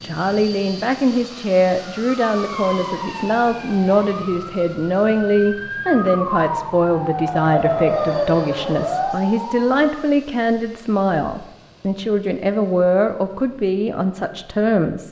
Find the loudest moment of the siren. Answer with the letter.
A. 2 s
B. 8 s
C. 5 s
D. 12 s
B.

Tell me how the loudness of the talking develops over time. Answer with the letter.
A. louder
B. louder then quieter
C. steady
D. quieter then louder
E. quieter
C.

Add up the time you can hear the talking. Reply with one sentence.
The talking can be heard for 15 seconds in total.